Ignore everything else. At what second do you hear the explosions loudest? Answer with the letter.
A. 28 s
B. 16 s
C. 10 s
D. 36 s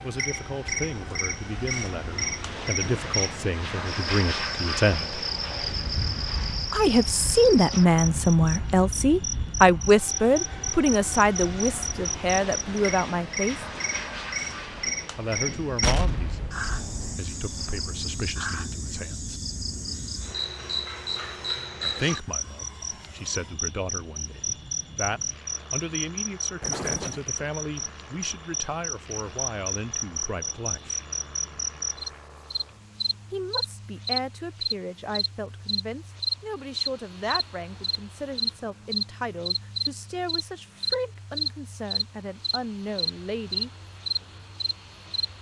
B.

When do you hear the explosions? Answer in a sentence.
The explosions can be heard from 15.8 to 17.1 s and from 26.6 to 27.2 s.